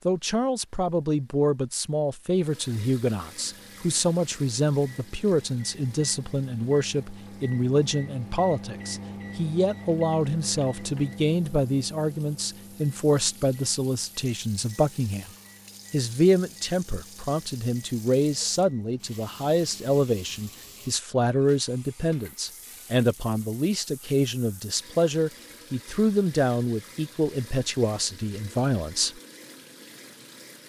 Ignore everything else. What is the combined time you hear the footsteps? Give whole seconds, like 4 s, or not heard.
not heard.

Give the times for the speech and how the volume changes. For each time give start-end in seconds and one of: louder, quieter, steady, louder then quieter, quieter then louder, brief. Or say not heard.
0.1-15.3 steady
15.9-29.2 steady.